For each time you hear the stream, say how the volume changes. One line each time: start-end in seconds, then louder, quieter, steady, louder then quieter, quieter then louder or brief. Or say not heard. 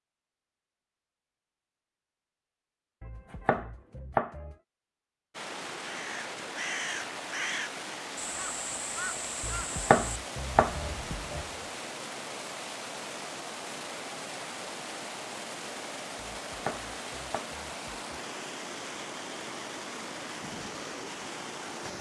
5.3-21.9 steady.